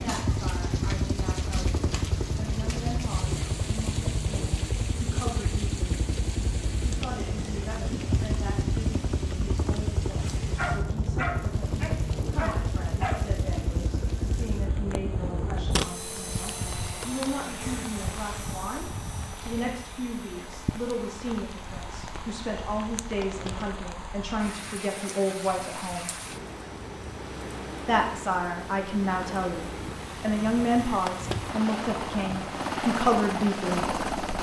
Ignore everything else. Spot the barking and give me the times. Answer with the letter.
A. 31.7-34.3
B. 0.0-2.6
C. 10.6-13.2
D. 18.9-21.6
C.